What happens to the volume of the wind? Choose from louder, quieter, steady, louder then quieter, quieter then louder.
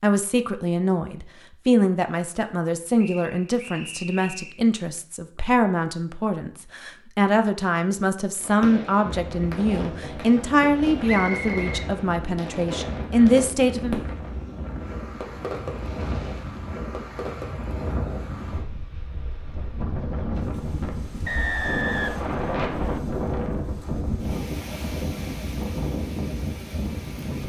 louder.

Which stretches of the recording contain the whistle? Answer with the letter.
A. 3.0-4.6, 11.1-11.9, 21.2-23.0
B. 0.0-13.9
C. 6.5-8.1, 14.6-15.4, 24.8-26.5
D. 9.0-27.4
A.